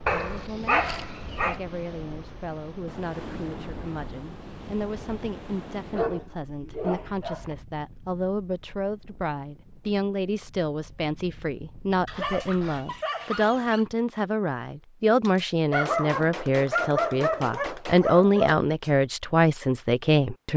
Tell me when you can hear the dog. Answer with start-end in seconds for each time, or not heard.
0.1-1.6, 5.9-7.5, 12.1-13.8, 15.7-18.6.